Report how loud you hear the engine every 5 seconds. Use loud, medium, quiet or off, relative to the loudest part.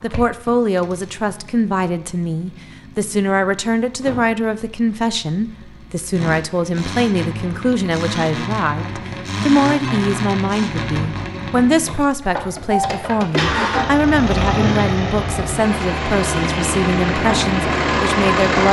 quiet, medium, loud, loud.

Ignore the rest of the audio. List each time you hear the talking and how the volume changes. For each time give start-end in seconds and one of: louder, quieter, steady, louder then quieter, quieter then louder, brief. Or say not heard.
0.0-18.6 steady.